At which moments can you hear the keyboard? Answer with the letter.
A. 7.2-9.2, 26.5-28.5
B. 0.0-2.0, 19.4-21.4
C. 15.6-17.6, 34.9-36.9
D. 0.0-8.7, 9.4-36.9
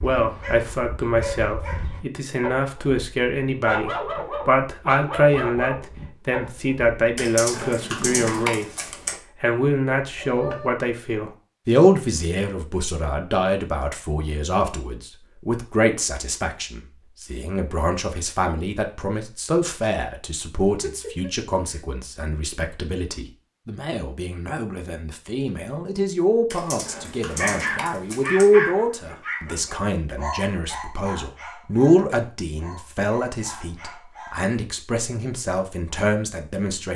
A.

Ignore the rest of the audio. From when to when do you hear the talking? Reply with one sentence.
The talking can be heard from 0.0 to 8.7 s and from 9.4 to 36.9 s.